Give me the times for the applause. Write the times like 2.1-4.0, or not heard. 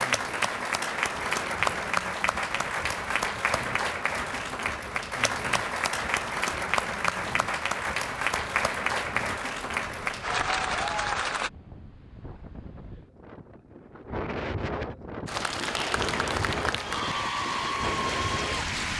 0.0-11.5, 15.2-18.9.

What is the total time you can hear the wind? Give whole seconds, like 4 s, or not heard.
19 s.